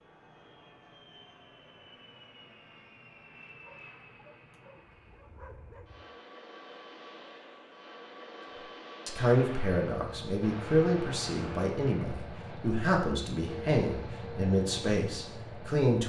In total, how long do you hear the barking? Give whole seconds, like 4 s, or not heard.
2 s.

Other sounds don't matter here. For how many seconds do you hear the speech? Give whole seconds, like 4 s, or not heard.
7 s.